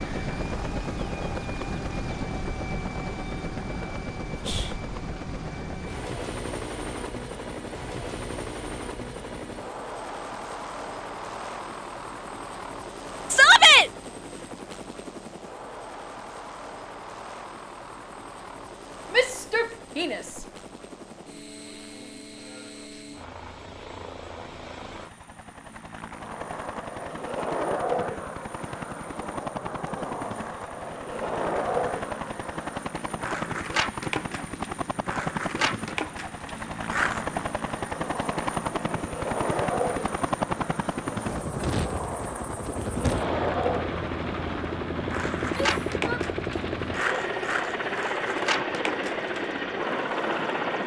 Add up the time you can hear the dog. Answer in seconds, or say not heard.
not heard.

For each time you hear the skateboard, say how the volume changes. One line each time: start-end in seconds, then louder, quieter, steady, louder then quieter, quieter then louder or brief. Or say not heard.
26.1-50.8 steady.